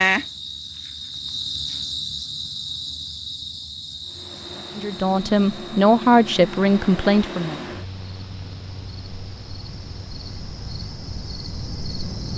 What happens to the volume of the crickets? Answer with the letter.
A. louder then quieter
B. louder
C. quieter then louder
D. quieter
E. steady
C.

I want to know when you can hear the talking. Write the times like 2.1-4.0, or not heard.
4.8-7.6.